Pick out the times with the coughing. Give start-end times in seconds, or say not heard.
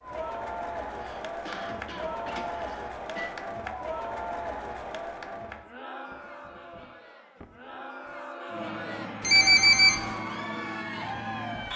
0.9-3.4, 6.0-8.2.